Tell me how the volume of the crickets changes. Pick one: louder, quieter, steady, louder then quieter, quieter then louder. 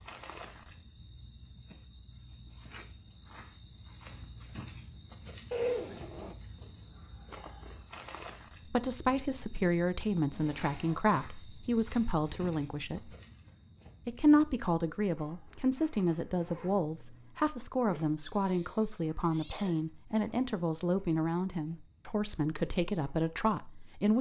quieter.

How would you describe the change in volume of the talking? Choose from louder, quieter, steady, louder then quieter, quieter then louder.
steady.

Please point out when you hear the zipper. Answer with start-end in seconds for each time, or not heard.
5.5-6.3, 10.2-11.1, 16.3-17.4.